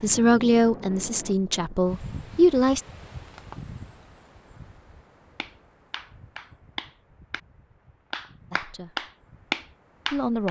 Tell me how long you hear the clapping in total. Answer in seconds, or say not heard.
4 s.